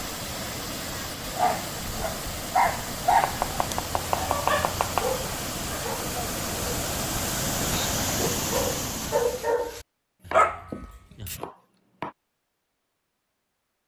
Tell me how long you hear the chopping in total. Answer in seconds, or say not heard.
4 s.